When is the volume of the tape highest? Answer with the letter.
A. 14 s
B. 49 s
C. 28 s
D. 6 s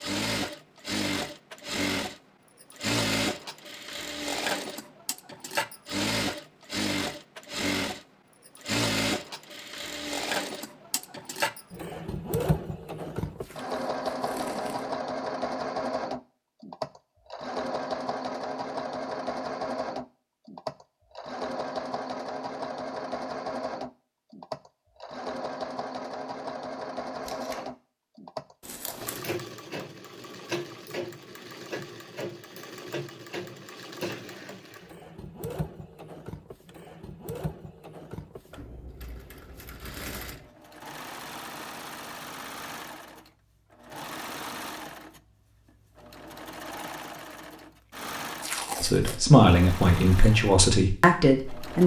B.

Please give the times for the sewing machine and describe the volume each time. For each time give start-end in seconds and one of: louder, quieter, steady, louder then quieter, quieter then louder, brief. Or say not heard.
0.0-51.8 quieter.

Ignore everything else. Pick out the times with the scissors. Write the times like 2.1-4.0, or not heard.
28.6-29.4.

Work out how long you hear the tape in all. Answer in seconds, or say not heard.
3 s.